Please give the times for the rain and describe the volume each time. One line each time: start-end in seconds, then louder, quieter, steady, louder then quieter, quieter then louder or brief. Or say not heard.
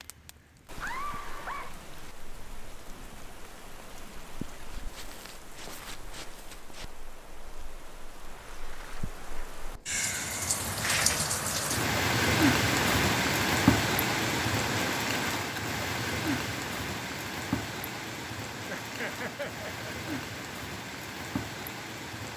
0.0-22.3 louder then quieter.